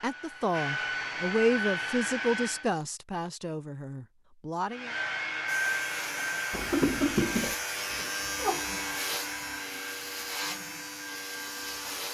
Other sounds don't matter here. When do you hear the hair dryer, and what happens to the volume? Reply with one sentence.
The hair dryer can be heard briefly from 0.0 to 2.7 s; and from 4.7 to 11.9 s, getting quieter.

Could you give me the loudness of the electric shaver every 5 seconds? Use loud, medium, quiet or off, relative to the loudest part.
off, loud, loud.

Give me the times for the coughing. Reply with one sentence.
You can hear the coughing from 6.5 to 7.5 s.